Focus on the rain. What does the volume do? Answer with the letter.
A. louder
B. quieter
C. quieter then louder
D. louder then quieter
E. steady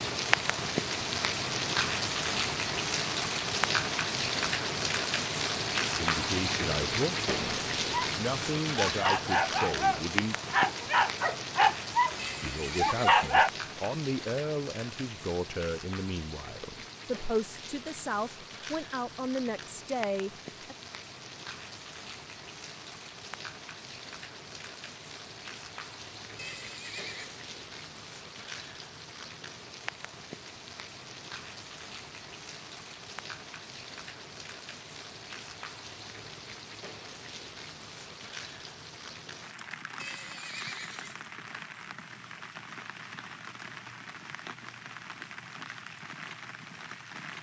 B.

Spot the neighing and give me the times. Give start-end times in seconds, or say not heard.
12.2-13.2, 26.4-27.4, 40.0-41.2.